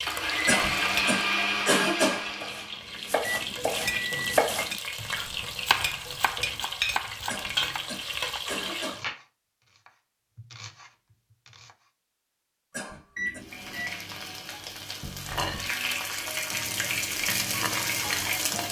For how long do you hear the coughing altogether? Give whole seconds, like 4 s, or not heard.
4 s.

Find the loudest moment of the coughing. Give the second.
2 s.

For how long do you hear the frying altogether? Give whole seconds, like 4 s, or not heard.
14 s.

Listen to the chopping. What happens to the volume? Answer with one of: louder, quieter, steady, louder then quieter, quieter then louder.
quieter.